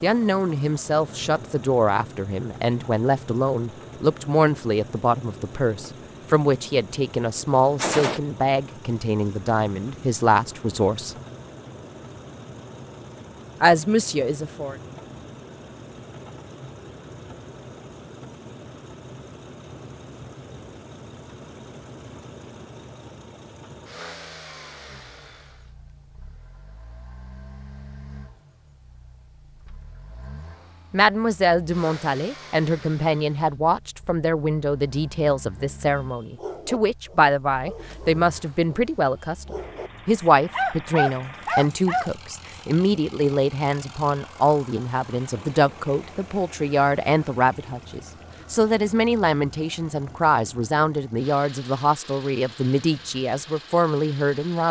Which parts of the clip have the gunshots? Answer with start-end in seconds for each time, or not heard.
7.8-8.2.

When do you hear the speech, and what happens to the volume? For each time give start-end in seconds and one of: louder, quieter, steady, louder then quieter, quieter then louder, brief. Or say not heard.
0.0-11.2 steady
13.6-14.8 brief
30.9-54.6 steady.